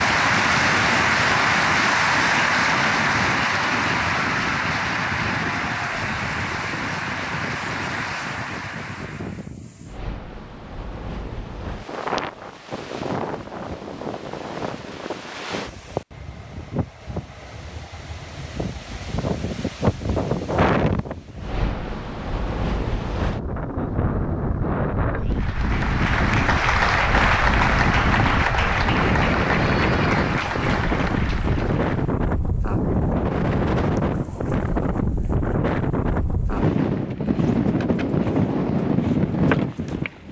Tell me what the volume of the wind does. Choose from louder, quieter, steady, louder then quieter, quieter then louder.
louder.